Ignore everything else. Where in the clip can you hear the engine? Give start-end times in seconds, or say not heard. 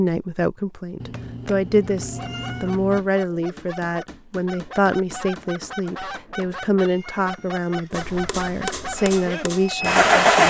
8.9-10.4.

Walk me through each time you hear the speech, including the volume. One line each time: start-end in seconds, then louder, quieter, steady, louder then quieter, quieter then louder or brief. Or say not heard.
0.0-10.4 steady.